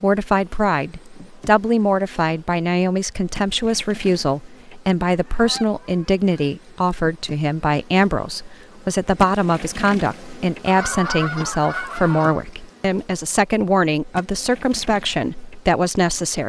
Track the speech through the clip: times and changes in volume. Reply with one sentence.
The speech can be heard from 0.0 to 16.4 s, at a steady volume.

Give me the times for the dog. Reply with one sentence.
You can't hear the dog here.